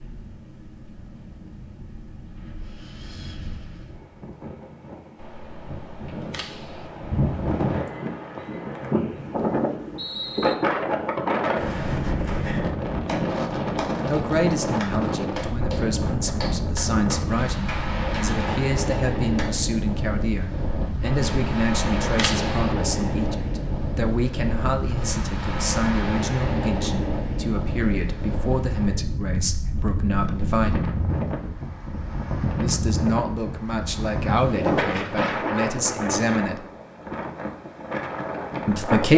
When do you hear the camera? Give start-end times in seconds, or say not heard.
5.2-6.9, 21.0-22.8.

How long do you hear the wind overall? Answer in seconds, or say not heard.
39 s.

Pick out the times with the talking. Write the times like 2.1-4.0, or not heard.
14.1-30.9, 32.6-36.6, 38.6-39.1.